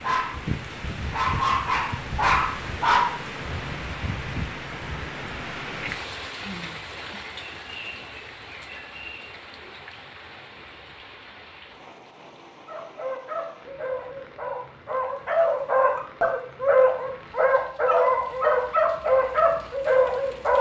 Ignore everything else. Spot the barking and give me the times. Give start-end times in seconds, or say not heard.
0.0-3.1, 12.7-20.5.